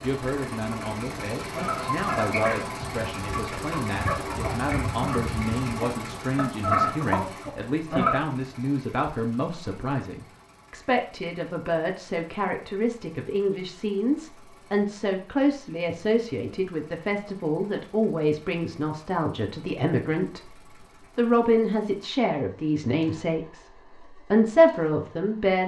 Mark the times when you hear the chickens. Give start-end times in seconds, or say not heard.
1.5-8.2.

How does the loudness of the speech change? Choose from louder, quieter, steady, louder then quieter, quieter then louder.
louder.